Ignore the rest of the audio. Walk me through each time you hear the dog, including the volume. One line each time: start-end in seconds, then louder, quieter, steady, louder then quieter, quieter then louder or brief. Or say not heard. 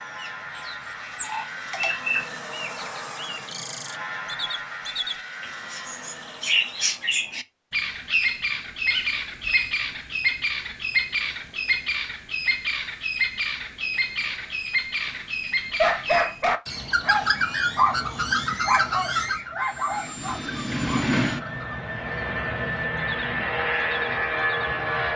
15.8-21.1 quieter.